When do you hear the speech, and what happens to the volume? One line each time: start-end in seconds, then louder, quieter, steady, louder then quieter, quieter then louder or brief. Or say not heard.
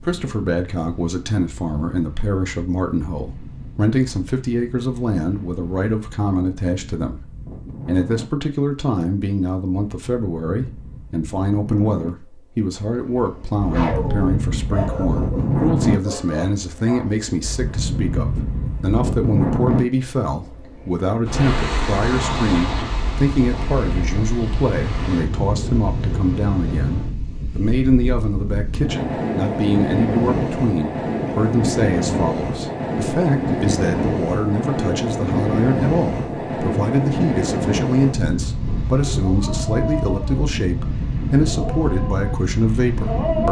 0.0-43.4 steady.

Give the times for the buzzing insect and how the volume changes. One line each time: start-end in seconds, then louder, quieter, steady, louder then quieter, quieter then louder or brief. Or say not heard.
not heard.